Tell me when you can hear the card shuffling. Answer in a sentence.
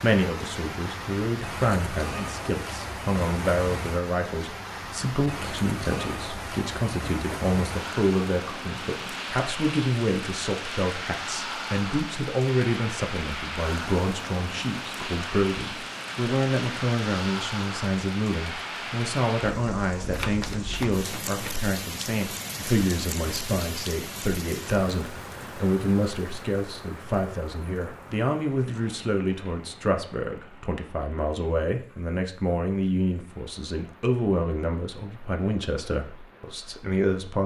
The card shuffling can be heard from 20.1 to 21.7 s.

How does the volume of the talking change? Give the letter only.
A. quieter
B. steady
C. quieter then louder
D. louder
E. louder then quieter
B.